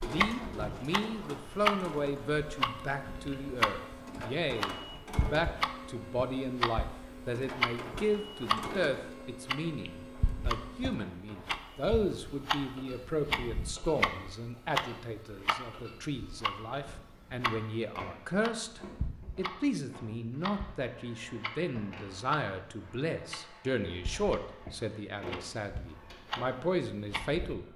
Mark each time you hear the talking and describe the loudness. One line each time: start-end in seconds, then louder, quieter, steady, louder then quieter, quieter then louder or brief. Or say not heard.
0.0-27.6 steady.